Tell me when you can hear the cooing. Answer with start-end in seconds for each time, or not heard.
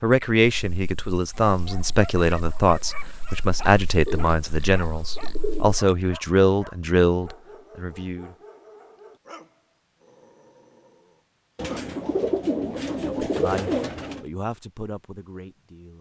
4.0-5.8, 11.6-14.2.